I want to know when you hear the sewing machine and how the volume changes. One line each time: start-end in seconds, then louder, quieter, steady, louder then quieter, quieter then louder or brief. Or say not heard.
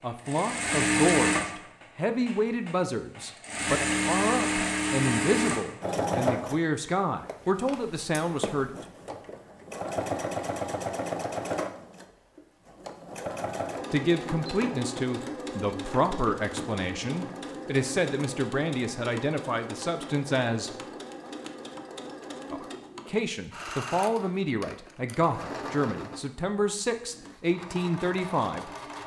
0.1-29.0 quieter.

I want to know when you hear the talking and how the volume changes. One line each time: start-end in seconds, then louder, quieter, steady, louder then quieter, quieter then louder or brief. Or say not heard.
0.0-8.8 steady
13.9-20.7 steady
22.5-28.7 steady.